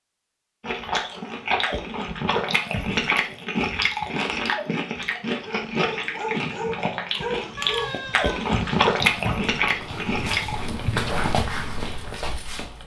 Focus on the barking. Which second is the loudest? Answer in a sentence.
The volume of the barking peaks at 11 seconds.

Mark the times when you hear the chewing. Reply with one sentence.
The chewing can be heard from 0.6 to 10.7 s.